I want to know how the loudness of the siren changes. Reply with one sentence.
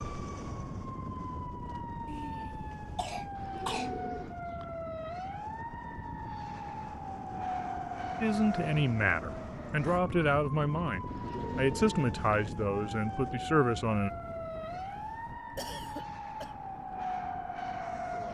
The loudness of the siren stays about the same.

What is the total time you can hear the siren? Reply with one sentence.
You can hear the siren for 18 seconds altogether.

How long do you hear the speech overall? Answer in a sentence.
The speech can be heard for 6 seconds in total.